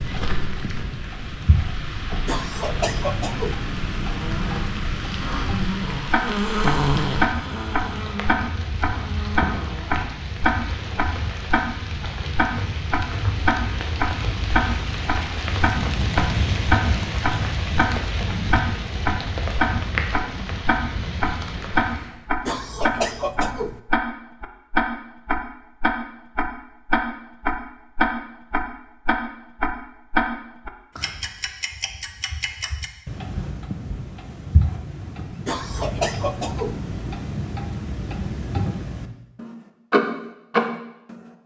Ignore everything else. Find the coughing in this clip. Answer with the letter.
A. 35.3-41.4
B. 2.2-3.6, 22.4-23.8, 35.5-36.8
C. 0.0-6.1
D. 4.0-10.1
B.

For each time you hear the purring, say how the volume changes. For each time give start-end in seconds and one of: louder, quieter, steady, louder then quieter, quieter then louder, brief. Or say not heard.
not heard.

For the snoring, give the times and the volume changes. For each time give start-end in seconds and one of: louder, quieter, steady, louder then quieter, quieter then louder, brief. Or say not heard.
4.0-10.1 louder then quieter.